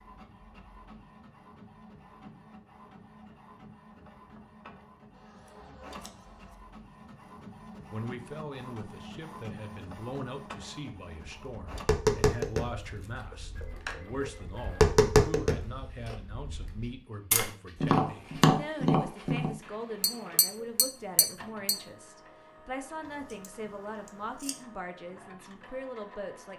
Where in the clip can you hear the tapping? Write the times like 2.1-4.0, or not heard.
11.2-21.8.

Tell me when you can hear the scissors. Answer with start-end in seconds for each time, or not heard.
5.1-6.5, 13.0-14.1, 23.0-24.6.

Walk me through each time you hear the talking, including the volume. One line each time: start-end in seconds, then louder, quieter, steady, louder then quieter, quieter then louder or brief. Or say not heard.
7.9-26.5 steady.